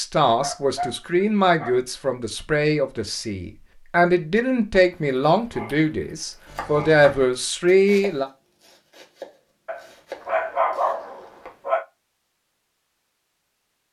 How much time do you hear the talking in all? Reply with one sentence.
You can hear the talking for 8 seconds altogether.